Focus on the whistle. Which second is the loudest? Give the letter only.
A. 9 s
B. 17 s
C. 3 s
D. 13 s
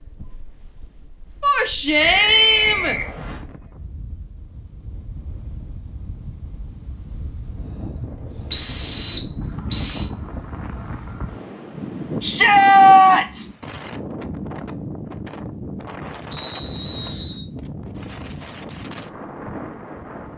A.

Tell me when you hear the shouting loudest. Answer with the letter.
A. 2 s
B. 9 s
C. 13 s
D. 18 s
C.